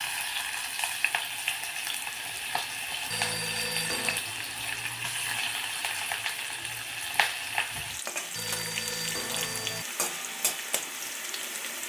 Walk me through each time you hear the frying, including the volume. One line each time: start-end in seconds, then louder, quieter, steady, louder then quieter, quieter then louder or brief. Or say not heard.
0.0-11.8 steady.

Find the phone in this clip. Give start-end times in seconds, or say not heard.
3.1-4.2, 8.3-9.8.